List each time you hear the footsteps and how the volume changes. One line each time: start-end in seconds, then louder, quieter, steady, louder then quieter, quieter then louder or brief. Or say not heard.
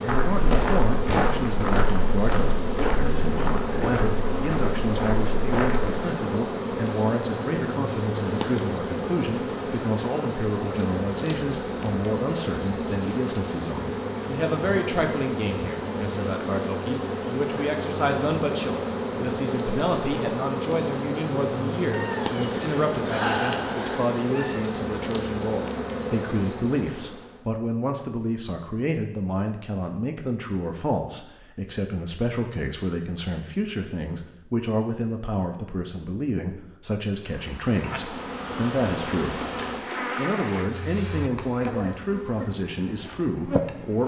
0.1-6.0 quieter.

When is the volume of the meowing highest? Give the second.
23 s.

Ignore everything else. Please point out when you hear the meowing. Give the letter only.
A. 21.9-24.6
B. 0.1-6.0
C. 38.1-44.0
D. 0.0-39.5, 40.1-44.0
A.